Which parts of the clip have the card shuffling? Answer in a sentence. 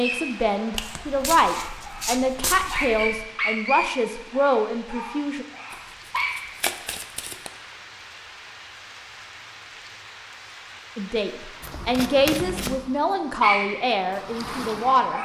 You can hear the card shuffling from 0.8 to 3.2 s, from 5.7 to 7.5 s and from 11.6 to 12.8 s.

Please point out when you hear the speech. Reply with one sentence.
You can hear the speech from 0.0 to 5.5 s and from 10.9 to 15.2 s.